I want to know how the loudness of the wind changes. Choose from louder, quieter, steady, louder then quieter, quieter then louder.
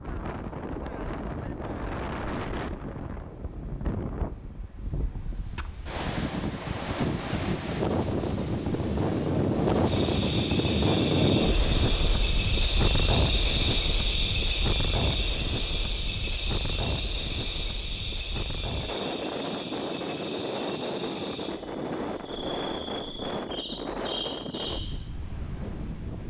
louder then quieter.